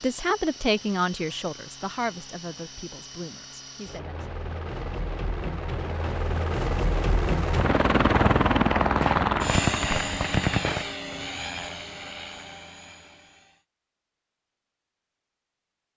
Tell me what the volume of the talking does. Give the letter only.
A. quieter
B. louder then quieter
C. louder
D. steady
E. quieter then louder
A.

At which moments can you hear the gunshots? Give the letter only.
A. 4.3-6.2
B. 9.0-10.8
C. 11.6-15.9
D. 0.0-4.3
B.